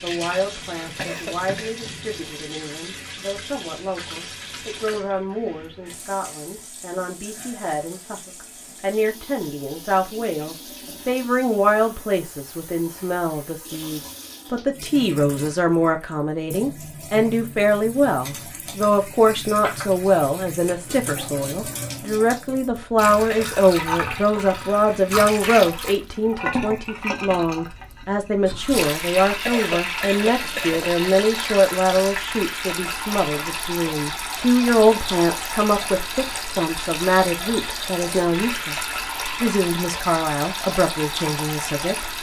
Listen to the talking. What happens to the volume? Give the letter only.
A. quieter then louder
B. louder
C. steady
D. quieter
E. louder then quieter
B.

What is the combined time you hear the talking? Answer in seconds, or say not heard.
42 s.